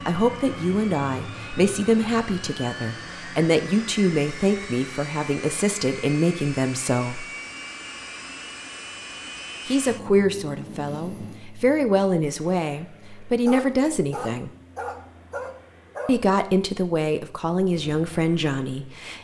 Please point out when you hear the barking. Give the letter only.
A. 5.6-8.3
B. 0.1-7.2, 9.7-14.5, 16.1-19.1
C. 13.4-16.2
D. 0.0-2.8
C.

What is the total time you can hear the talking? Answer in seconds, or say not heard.
15 s.